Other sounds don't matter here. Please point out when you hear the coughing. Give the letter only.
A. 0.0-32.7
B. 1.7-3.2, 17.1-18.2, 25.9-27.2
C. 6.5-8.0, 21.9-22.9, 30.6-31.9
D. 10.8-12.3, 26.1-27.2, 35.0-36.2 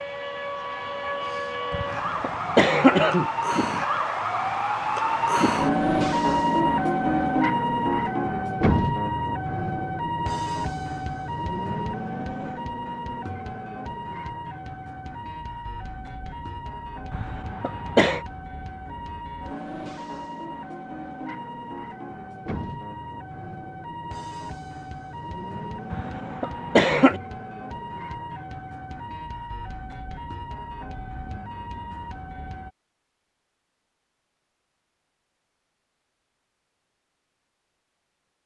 B.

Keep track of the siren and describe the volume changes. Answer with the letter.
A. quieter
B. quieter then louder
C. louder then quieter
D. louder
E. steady
A.